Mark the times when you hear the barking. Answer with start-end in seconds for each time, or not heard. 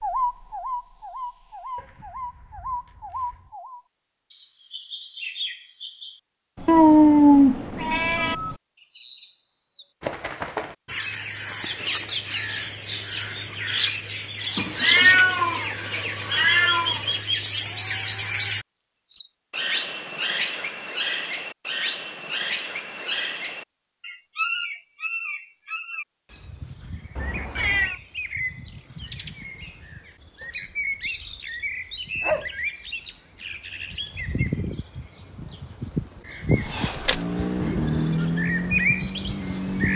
1.8-3.5, 30.4-32.6.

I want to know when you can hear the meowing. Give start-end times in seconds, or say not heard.
6.7-8.3, 14.6-17.2, 27.1-27.9.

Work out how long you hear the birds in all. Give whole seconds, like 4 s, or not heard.
40 s.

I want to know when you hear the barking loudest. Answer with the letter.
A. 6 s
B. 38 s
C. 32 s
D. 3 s
C.